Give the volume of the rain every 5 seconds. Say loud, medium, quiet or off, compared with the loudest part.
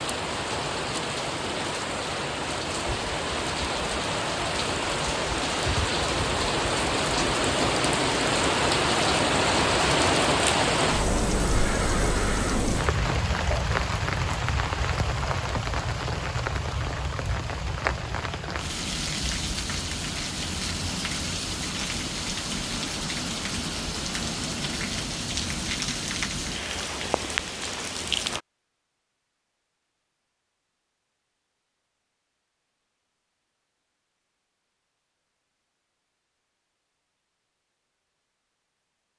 medium, loud, loud, medium, medium, medium, off, off.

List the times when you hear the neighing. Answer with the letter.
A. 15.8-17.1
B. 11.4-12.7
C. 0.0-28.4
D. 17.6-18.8
B.